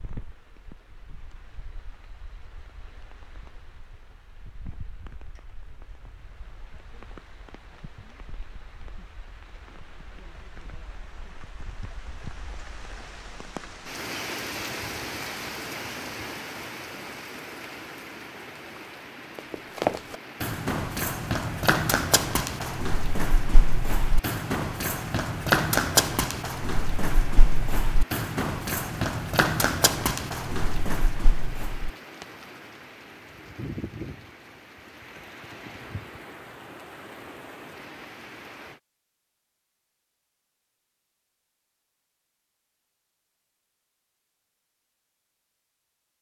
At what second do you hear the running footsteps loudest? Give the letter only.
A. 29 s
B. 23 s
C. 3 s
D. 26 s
D.